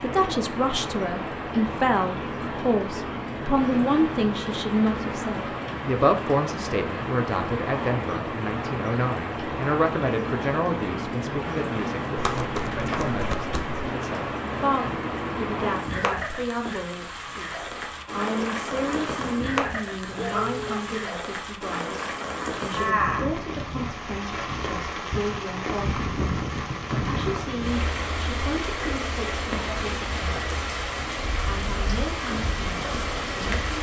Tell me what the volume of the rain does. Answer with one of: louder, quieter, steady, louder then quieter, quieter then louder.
steady.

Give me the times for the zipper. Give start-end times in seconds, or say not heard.
not heard.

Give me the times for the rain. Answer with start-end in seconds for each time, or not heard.
0.0-33.7.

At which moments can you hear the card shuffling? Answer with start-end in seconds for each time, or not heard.
12.2-13.8.